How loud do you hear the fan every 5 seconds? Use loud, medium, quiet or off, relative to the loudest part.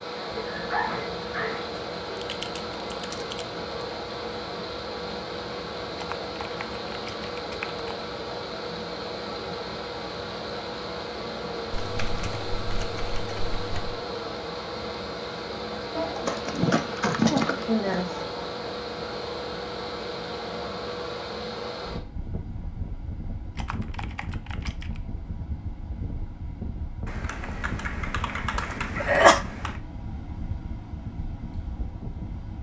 loud, loud, loud, loud, loud, medium, medium.